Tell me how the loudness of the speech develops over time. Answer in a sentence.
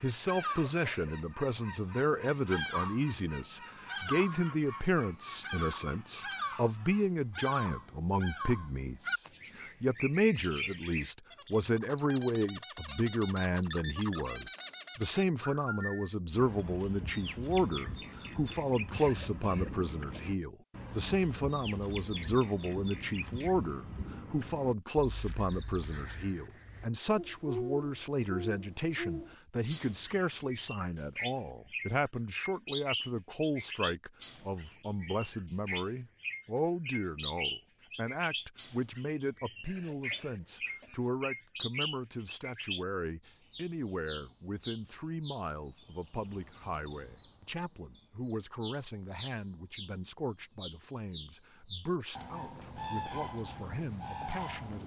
The loudness of the speech goes down.